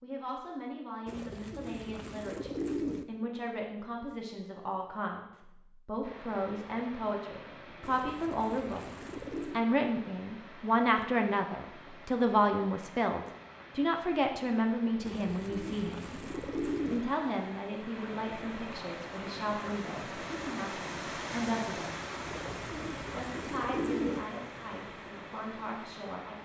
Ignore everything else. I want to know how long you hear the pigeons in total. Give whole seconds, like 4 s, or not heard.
8 s.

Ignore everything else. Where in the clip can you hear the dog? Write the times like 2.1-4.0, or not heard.
not heard.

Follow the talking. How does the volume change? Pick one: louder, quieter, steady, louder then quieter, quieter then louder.
louder then quieter.